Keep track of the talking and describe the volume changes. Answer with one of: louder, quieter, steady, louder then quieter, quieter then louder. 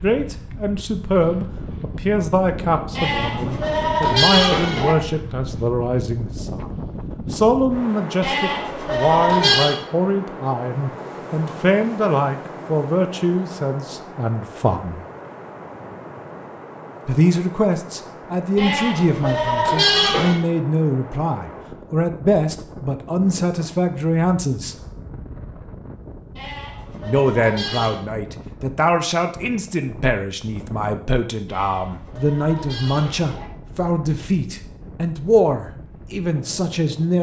steady.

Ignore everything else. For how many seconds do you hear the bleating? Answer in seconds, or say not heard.
9 s.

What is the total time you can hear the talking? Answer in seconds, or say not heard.
33 s.